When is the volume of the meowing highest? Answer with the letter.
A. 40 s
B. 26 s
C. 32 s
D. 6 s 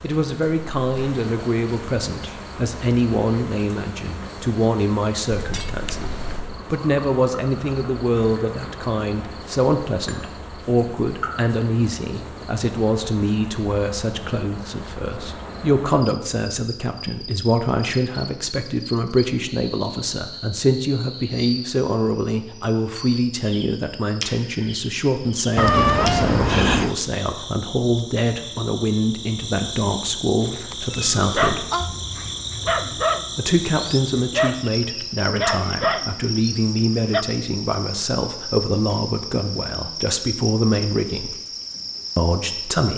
B.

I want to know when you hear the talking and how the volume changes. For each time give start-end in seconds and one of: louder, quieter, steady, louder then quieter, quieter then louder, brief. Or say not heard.
0.0-31.6 steady
33.4-41.4 steady
42.1-42.9 brief.